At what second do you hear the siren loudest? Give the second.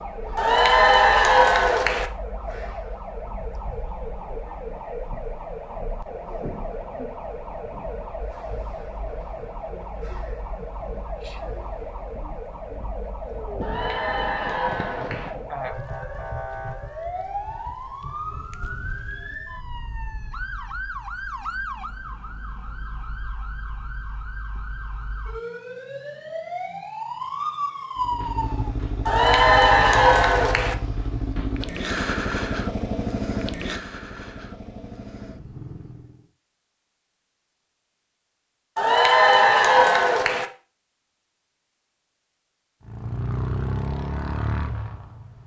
28 s.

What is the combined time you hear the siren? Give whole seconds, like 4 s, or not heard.
29 s.